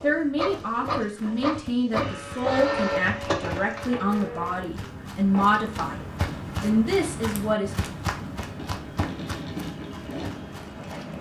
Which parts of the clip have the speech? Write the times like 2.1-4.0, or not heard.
0.0-7.8.